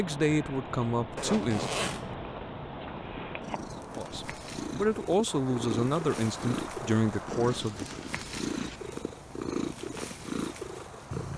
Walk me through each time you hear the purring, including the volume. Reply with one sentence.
The purring can be heard from 0.0 to 11.3 s, getting louder.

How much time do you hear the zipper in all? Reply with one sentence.
You can hear the zipper for 3 seconds altogether.